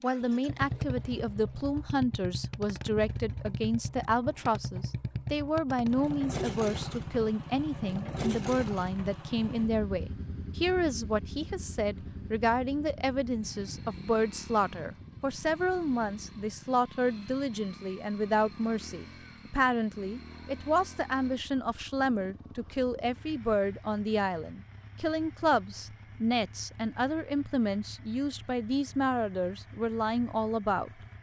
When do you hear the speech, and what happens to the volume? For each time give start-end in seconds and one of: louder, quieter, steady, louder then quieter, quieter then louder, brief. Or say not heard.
0.0-31.0 steady.